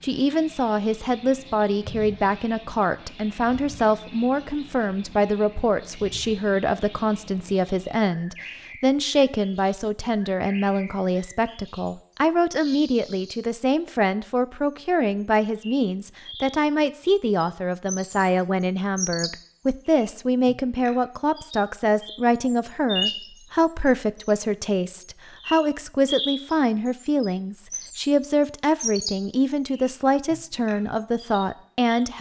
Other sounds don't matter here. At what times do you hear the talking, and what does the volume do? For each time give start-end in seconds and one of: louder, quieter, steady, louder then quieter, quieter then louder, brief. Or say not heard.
0.0-32.1 steady.